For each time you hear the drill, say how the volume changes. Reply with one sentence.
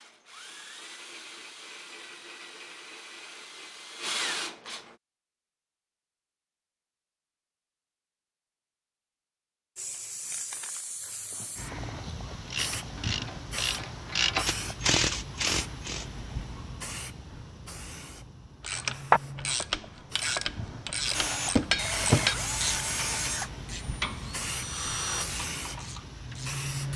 The drill can be heard from 0.0 to 5.0 s, getting louder; and from 21.1 to 25.2 s, getting quieter then louder.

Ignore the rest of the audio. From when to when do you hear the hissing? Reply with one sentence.
You can hear the hissing from 9.8 to 26.9 s.